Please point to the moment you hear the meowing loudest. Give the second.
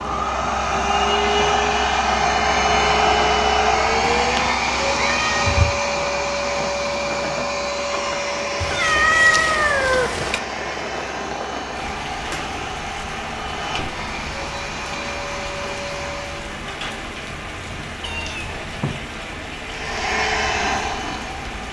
9 s.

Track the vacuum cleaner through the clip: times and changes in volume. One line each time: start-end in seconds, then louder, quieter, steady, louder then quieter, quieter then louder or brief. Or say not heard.
0.0-16.6 quieter
19.6-21.6 brief.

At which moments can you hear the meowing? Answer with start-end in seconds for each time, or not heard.
4.0-5.7, 8.6-10.4, 17.4-19.0.